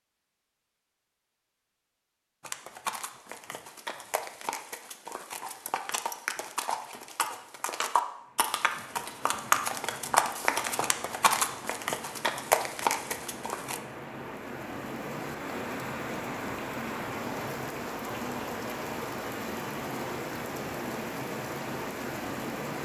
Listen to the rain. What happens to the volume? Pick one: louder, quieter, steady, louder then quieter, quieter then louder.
louder.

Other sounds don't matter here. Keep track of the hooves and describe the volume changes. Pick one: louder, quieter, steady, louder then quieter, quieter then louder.
louder.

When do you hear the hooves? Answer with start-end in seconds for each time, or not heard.
2.4-13.8.